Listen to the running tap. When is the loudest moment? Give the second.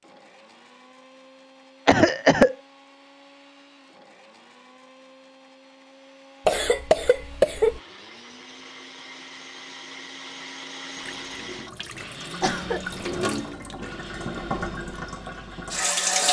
16 s.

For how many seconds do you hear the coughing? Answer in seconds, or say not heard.
3 s.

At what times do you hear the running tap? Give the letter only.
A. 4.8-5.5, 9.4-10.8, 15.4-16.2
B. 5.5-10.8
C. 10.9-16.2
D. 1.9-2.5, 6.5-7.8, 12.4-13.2
C.